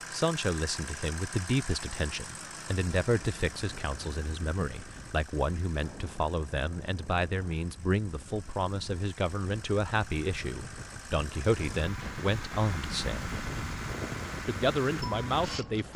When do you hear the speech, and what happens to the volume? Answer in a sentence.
You can hear the speech from 0.1 to 13.4 s, at a steady volume; and briefly from 14.4 to 15.9 s.